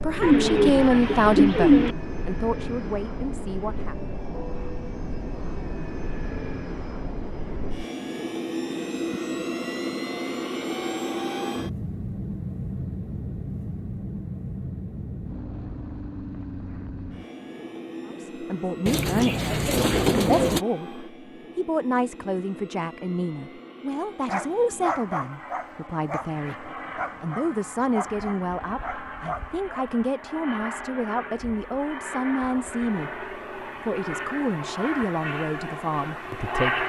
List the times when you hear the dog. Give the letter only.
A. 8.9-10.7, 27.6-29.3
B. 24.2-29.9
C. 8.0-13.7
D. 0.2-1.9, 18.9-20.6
B.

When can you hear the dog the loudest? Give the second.
25 s.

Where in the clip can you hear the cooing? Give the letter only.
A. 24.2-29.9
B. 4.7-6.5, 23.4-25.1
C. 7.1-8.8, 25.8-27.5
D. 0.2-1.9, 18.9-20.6
D.